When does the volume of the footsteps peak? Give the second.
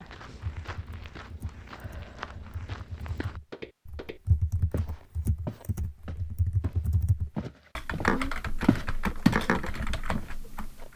9 s.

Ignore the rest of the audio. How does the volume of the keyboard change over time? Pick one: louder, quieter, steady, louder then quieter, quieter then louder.
louder.